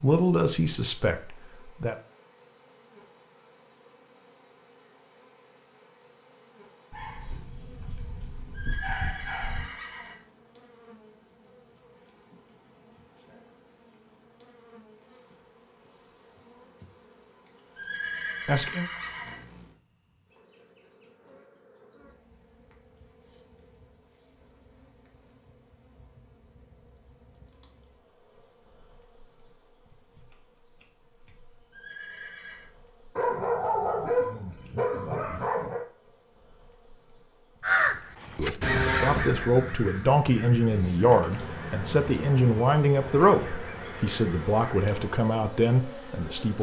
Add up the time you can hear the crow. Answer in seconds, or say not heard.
7 s.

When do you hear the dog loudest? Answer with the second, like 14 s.
34 s.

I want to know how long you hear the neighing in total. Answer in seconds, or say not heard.
4 s.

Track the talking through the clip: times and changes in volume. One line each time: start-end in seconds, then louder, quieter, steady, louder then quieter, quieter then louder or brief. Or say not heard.
0.0-1.9 brief
18.4-18.9 brief
38.4-46.5 steady.